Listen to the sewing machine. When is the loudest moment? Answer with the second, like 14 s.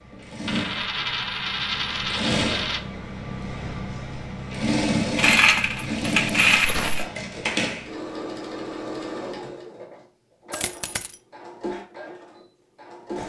5 s.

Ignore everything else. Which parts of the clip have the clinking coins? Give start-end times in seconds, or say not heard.
0.5-2.8, 5.2-7.0, 10.5-11.2.